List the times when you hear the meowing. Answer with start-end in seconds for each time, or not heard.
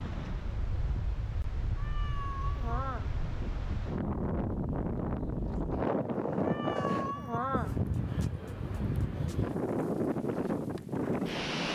1.8-3.1, 6.4-7.8.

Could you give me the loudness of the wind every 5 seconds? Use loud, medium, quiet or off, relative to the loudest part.
medium, loud, loud.